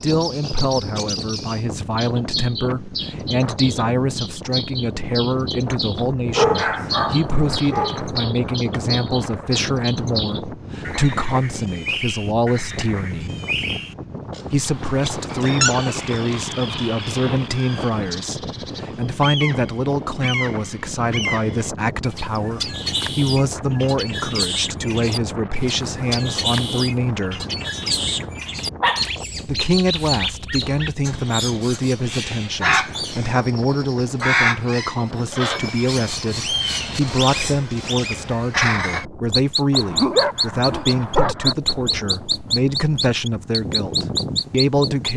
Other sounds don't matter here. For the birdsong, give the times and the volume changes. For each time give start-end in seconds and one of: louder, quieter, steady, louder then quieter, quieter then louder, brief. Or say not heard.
0.0-45.1 louder.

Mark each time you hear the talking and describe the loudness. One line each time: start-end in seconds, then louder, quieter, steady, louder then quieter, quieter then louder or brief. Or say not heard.
0.0-13.3 steady
14.5-27.4 steady
29.4-45.1 steady.